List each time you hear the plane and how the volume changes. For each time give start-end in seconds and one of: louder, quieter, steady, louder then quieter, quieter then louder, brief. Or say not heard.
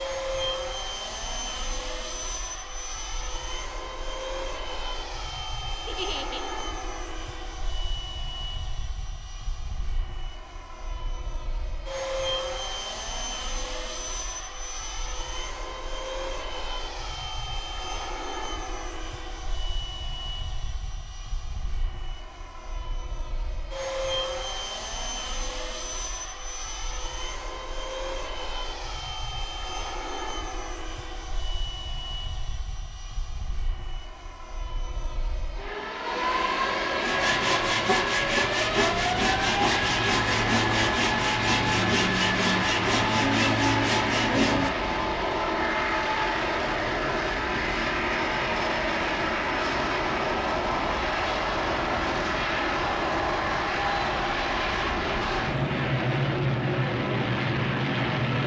0.0-58.4 louder.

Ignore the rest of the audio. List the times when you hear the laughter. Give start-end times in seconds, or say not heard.
5.8-6.5.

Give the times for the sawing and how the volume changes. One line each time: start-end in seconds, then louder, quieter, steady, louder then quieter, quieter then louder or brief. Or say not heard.
37.0-44.7 steady.